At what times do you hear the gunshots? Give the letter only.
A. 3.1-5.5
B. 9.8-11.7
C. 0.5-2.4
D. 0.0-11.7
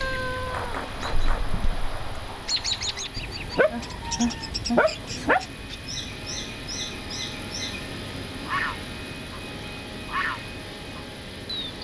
C.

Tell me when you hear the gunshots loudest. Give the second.
1 s.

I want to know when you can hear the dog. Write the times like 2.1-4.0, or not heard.
3.1-5.5.